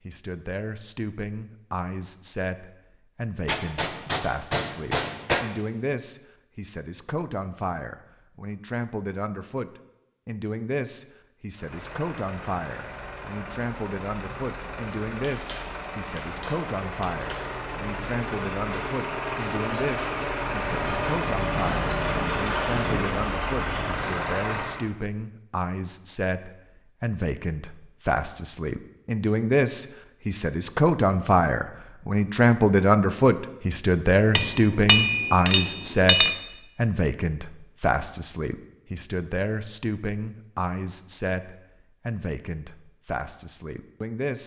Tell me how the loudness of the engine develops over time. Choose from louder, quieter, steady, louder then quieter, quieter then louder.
louder.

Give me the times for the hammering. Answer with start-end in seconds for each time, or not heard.
3.5-5.5, 15.2-17.4, 34.4-36.4.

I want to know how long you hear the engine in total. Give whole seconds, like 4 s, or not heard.
13 s.